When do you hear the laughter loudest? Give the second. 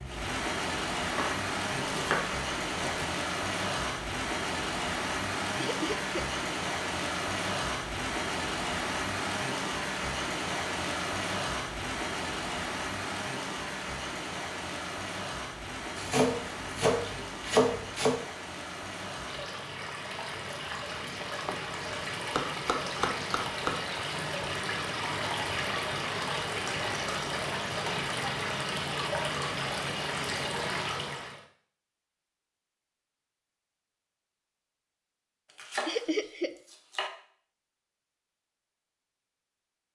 36 s.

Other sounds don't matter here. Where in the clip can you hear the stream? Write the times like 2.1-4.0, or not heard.
0.0-31.4.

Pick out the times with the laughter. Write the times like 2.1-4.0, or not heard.
5.5-6.2, 35.9-36.5.